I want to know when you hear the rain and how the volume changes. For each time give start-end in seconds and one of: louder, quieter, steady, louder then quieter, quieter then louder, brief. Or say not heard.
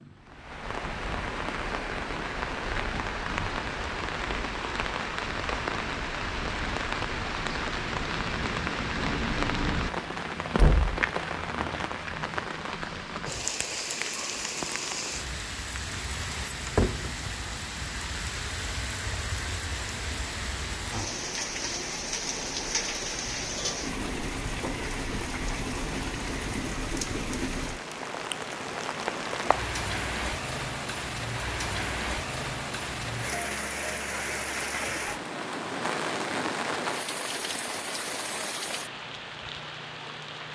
0.0-40.4 steady.